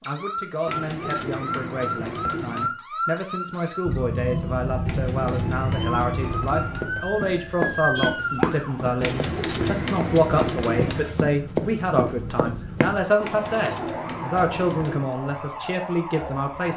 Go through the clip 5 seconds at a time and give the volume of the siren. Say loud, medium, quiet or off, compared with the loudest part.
loud, loud, medium, medium.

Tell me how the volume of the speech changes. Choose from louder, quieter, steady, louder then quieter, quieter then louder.
louder.